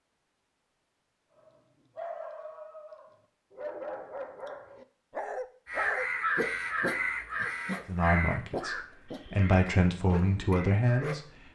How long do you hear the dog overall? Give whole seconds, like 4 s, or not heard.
10 s.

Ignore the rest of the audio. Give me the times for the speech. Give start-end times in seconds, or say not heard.
7.8-11.5.